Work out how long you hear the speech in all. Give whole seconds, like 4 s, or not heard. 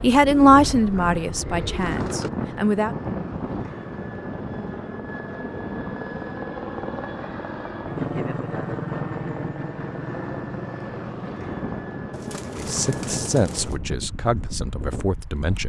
6 s.